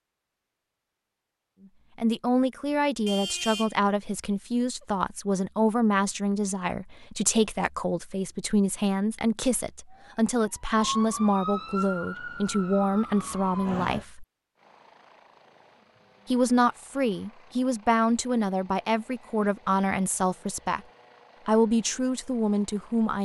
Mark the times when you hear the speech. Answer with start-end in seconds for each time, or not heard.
1.9-14.2, 16.2-20.8, 21.4-23.1.